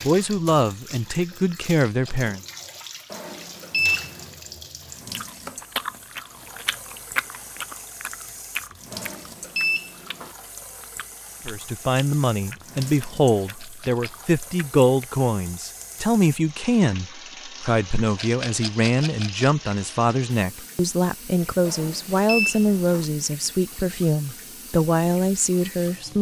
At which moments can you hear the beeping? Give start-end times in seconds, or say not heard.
3.1-4.2, 8.9-10.3, 21.6-23.1.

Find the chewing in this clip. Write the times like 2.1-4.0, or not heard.
5.0-15.2.